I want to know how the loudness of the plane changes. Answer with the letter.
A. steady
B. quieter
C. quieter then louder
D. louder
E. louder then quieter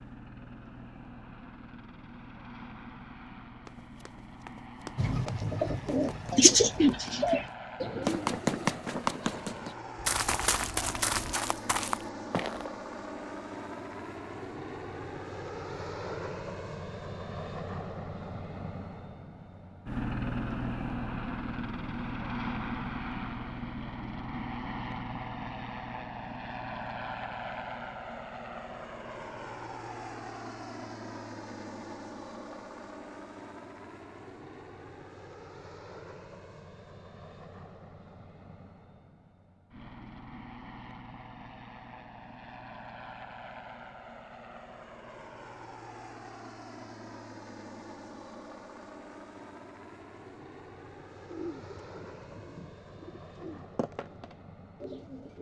E.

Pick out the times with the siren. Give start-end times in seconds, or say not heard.
not heard.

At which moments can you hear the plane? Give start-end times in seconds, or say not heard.
0.0-55.3.